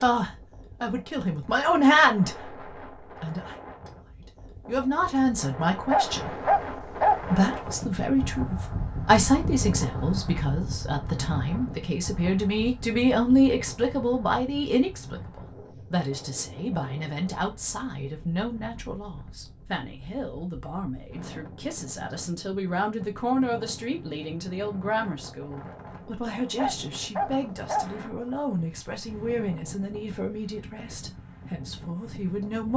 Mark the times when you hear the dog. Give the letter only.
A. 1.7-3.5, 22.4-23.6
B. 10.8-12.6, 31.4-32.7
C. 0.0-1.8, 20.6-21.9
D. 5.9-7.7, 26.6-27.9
D.